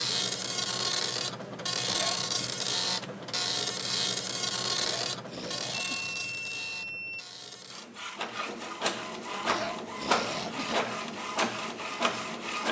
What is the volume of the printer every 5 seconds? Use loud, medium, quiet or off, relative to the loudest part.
loud, medium, loud.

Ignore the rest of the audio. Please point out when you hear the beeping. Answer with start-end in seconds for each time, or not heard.
5.9-7.2.